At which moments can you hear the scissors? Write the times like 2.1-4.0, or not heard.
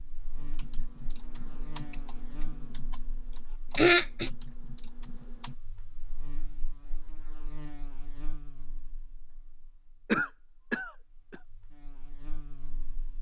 not heard.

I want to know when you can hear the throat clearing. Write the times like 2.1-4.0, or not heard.
3.3-4.3, 10.1-11.4.